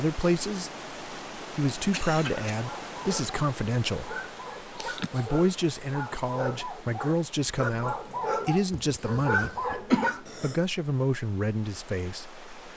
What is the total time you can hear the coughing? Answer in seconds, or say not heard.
3 s.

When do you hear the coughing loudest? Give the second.
10 s.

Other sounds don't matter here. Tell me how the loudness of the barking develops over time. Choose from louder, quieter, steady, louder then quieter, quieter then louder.
louder.